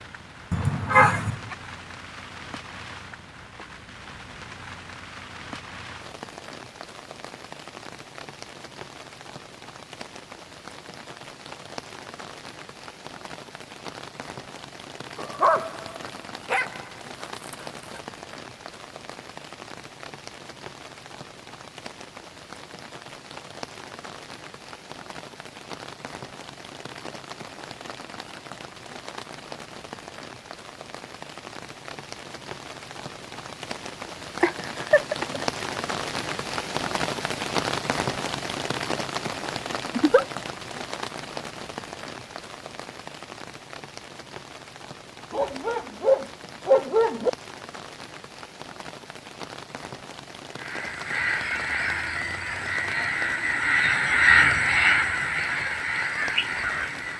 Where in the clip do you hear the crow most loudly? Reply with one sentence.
The volume of the crow peaks at 54 seconds.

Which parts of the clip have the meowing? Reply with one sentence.
The meowing can't be heard in this clip.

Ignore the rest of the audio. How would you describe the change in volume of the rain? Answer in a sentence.
The loudness of the rain goes up, then down.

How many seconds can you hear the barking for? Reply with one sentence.
The barking can be heard for 5 seconds in total.